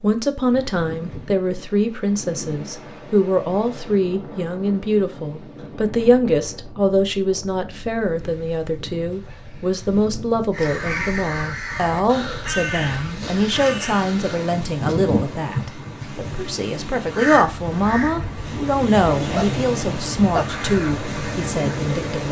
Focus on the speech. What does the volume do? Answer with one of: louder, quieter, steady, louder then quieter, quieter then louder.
steady.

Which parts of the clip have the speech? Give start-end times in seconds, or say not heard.
0.0-22.2.